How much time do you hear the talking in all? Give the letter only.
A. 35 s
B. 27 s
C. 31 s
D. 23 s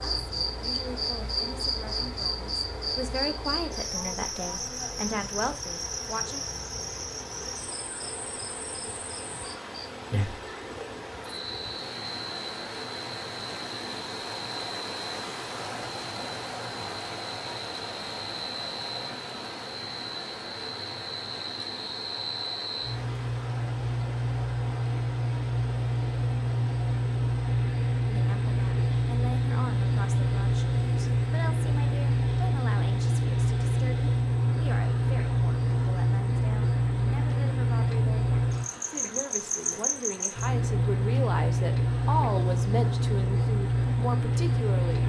D.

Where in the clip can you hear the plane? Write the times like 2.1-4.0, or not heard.
not heard.